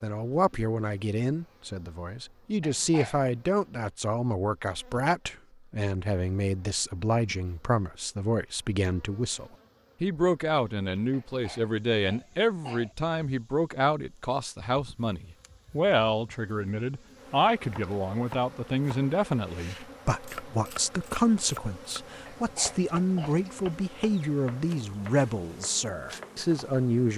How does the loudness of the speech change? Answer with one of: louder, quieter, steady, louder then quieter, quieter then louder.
steady.